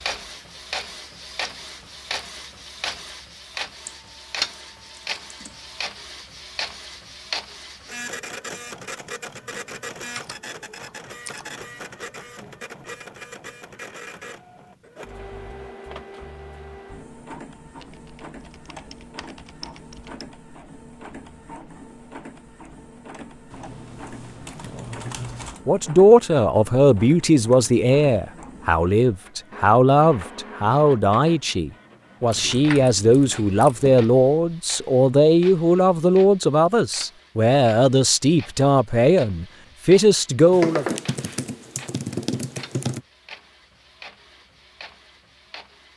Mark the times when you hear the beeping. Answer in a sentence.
You can't hear the beeping here.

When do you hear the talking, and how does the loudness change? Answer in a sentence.
You can hear the talking from 25.6 to 40.9 s, at a steady volume.